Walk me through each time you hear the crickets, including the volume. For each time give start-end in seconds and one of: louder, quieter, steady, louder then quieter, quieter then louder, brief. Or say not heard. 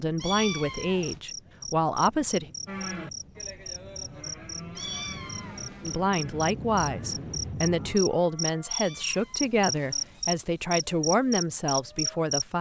0.1-12.4 louder.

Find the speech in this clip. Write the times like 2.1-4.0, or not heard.
0.0-2.5, 5.8-12.5.